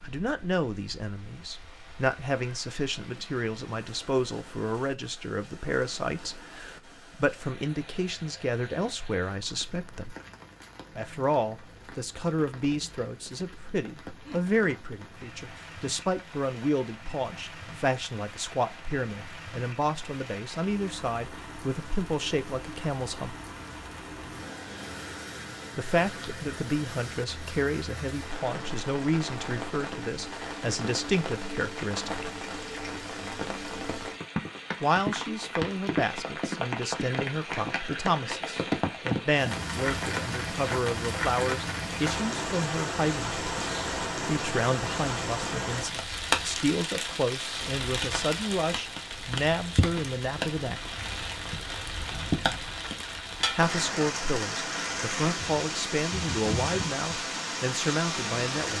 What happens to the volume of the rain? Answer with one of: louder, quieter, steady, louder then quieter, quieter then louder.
louder.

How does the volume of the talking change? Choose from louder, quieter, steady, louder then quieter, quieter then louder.
steady.